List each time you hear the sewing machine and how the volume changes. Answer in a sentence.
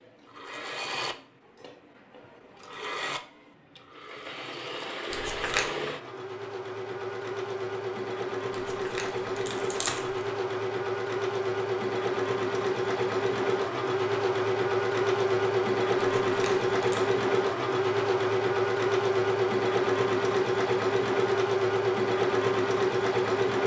The sewing machine can be heard from 0.0 to 23.6 s, getting louder.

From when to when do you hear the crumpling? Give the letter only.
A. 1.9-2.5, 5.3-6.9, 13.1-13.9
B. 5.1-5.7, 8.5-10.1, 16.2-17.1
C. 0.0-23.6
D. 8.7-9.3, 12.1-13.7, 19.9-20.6
B.